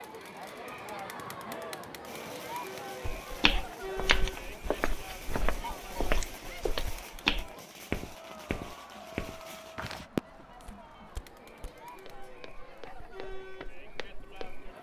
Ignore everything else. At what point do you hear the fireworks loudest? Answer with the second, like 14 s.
10 s.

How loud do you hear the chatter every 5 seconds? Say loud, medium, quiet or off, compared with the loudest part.
loud, medium, medium.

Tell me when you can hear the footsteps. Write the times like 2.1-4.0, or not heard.
3.1-14.7.